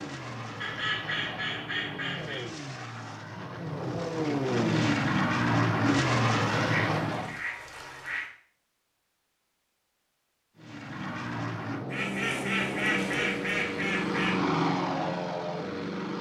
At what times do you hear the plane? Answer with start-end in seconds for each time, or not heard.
0.0-7.4, 10.6-16.1.